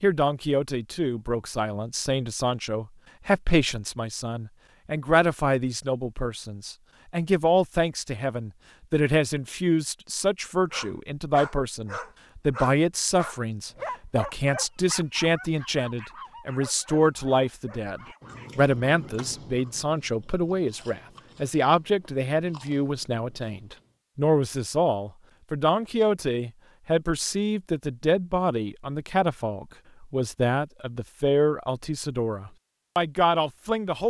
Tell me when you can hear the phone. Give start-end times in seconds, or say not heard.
not heard.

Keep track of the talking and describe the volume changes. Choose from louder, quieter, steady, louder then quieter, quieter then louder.
steady.